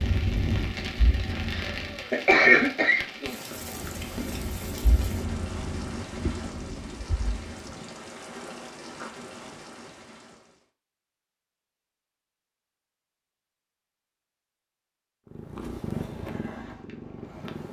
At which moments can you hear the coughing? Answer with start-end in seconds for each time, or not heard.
1.4-3.0.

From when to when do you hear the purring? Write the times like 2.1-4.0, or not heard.
0.0-2.0, 3.6-7.9, 15.3-17.6.